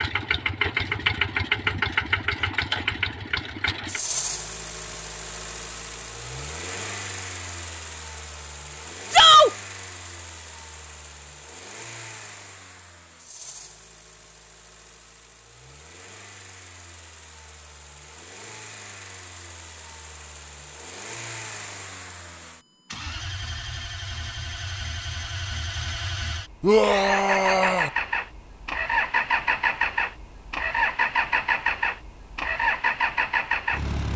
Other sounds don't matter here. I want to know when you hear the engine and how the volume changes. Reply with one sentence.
The engine can be heard from 0.0 to 34.1 s, getting quieter then louder.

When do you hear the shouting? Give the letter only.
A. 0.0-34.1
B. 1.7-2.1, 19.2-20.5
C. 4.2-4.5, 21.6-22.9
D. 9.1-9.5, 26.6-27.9
D.